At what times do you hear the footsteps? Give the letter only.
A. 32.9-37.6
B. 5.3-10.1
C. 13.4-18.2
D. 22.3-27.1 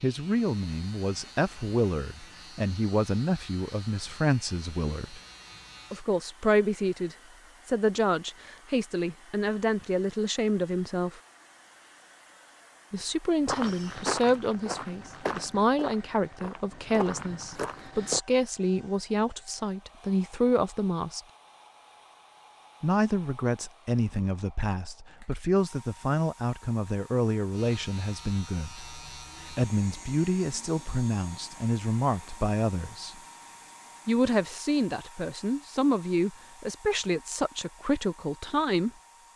C.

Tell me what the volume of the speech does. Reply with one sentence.
The volume of the speech stays about the same.